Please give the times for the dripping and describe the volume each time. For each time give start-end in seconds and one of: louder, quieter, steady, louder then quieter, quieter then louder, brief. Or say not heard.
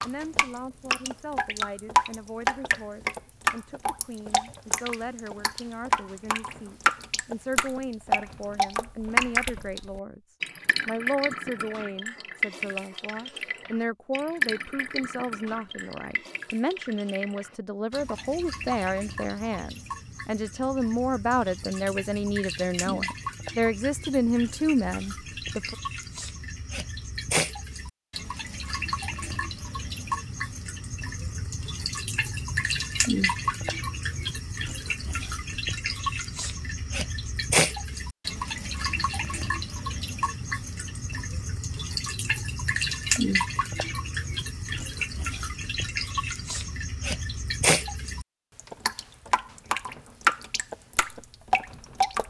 0.0-52.2 quieter then louder.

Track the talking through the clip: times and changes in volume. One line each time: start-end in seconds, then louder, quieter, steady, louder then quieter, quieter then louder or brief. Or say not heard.
0.0-25.8 louder.